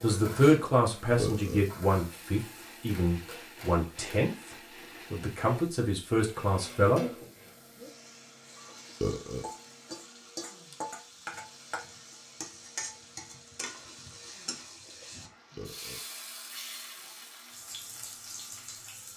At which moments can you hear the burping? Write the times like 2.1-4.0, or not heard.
1.1-1.6, 9.0-9.5, 15.6-16.1.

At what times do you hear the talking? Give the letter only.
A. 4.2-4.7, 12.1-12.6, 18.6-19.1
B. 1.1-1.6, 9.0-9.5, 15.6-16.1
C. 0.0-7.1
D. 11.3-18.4
C.